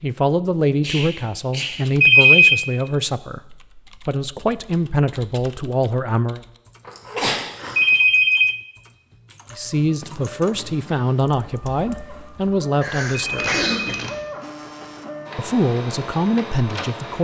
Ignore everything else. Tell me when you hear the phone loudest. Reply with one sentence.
The loudest moment of the phone is at 2 seconds.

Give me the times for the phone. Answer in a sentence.
The phone can be heard from 2.0 to 2.6 s, from 7.8 to 8.6 s and from 13.2 to 14.2 s.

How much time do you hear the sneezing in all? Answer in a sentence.
The sneezing can be heard for 4 seconds in total.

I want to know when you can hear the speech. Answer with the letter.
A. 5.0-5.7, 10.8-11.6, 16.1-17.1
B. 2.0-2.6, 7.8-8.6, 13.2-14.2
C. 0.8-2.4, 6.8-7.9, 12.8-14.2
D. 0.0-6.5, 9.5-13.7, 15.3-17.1
D.